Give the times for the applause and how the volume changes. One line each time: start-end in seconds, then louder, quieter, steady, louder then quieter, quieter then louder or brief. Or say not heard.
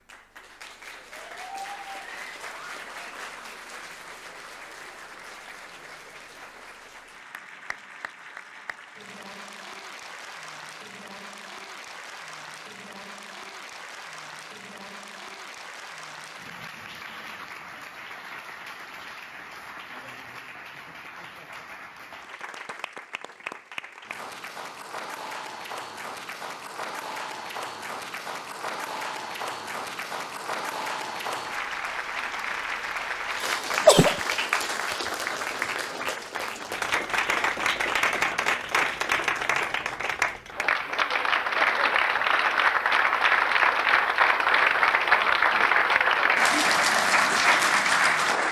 0.0-48.4 louder.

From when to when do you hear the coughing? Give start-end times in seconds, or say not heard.
33.4-34.2.